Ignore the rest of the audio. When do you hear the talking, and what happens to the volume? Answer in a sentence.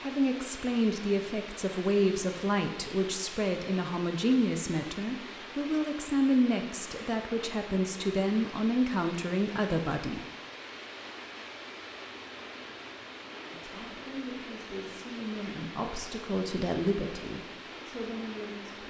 The talking can be heard from 0.0 to 10.2 s, at a steady volume; and from 13.4 to 18.8 s, getting louder then quieter.